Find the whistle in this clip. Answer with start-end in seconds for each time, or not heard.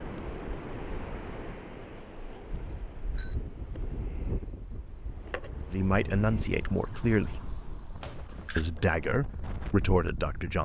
not heard.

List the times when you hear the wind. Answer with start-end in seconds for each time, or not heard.
0.0-10.6.